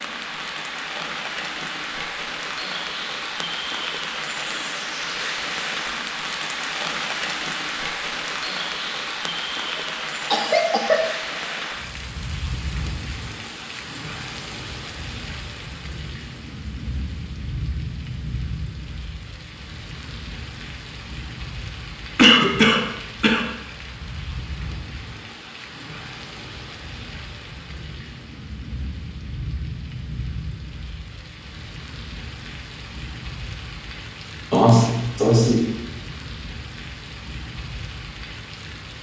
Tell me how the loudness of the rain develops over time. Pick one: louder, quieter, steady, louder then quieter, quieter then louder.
quieter.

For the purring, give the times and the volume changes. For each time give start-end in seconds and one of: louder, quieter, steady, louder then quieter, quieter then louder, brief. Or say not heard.
not heard.